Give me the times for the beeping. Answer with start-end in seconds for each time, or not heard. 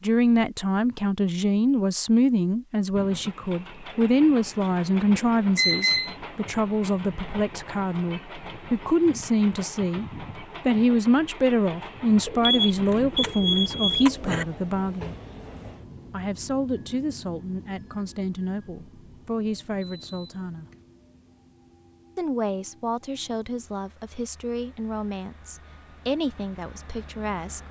5.2-6.2, 12.4-14.4, 19.8-20.9.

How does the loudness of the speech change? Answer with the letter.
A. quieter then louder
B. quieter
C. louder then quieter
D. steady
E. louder
B.